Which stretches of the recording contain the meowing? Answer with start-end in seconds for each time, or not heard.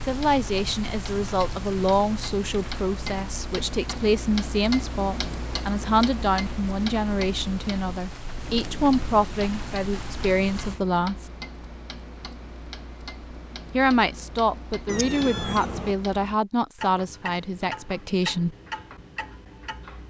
14.8-15.9.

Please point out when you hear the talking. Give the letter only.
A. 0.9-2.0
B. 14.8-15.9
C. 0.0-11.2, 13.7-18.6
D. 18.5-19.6
C.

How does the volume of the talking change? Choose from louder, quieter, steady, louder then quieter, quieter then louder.
steady.